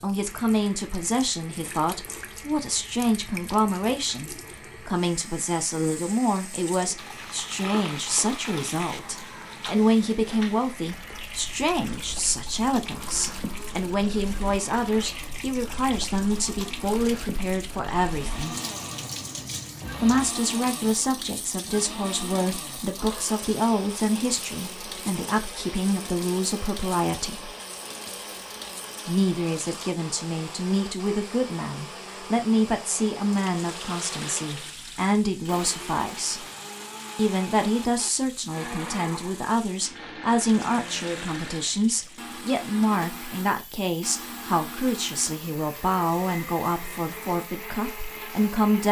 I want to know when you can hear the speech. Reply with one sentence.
The speech can be heard from 0.0 to 18.6 s, from 20.0 to 27.5 s, from 29.1 to 36.5 s and from 37.1 to 48.8 s.